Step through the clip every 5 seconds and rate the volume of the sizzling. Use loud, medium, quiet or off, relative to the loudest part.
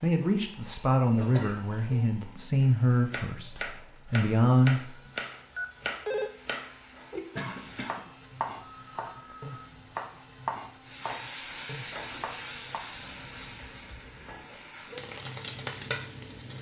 off, quiet, loud, loud.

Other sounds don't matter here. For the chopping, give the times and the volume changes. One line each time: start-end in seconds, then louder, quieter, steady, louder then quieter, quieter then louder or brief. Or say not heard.
2.6-12.9 quieter.